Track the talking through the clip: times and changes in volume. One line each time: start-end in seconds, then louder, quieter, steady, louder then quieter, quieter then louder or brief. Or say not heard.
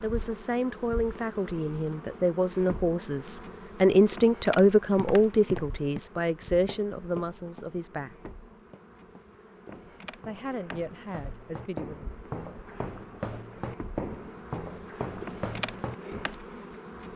0.0-8.3 louder then quieter
10.2-12.1 brief.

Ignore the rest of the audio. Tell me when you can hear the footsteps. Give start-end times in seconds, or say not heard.
4.8-16.3.